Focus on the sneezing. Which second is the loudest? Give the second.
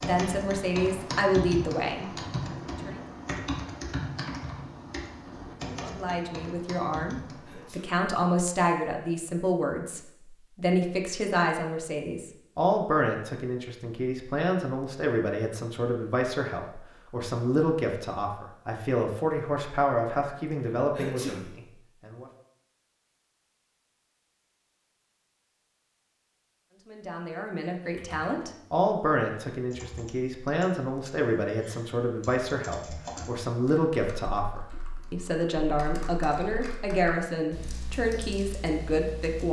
21 s.